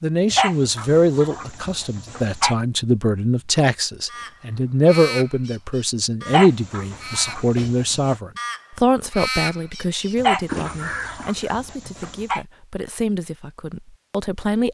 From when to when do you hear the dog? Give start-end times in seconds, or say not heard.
0.3-2.5, 6.2-8.2, 10.2-12.4.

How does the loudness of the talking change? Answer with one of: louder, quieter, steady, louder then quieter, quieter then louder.
quieter.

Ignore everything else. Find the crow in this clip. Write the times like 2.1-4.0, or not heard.
4.0-11.4.